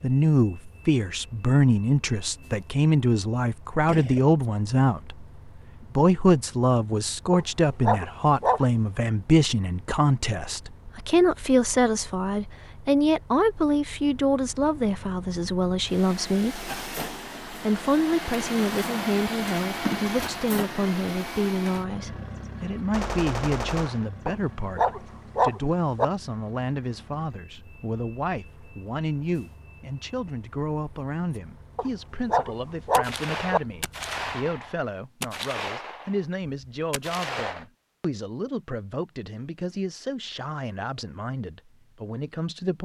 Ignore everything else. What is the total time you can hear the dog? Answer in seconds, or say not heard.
5 s.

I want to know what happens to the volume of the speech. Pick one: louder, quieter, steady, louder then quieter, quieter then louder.
quieter.